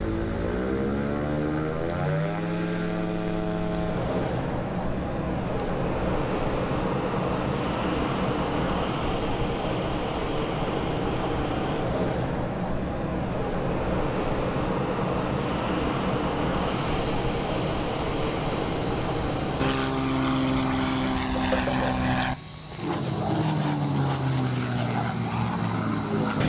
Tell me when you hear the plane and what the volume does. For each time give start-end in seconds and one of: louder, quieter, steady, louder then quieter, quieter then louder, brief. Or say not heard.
0.0-26.4 steady.